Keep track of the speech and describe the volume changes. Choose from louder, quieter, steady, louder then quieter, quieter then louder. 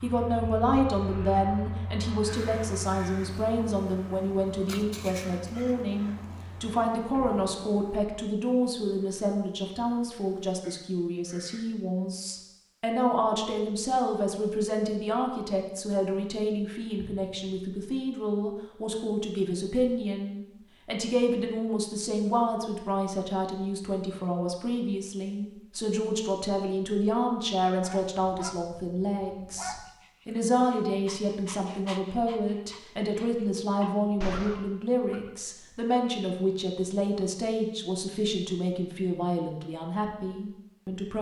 steady.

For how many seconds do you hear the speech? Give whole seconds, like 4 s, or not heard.
41 s.